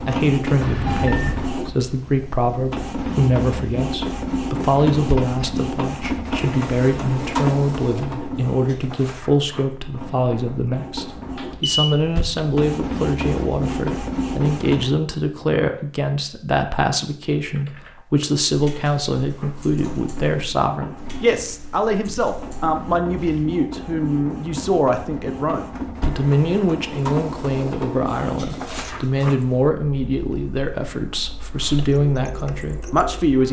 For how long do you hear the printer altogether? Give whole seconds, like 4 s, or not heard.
29 s.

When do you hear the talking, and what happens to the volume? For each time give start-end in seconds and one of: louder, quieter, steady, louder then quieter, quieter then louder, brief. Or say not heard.
0.1-33.4 steady.